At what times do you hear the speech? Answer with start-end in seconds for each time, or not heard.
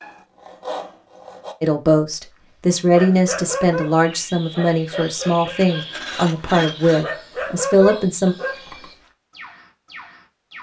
1.6-8.3.